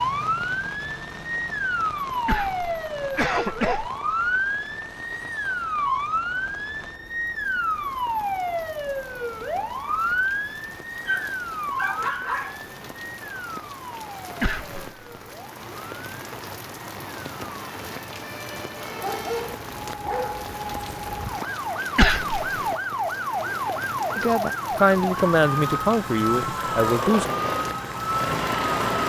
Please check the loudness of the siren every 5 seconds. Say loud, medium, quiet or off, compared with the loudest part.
loud, loud, loud, quiet, loud, loud.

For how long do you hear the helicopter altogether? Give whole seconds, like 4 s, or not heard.
2 s.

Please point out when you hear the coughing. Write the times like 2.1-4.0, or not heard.
2.2-3.9, 14.4-14.8, 21.9-22.4.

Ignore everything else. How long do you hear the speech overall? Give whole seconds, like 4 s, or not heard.
3 s.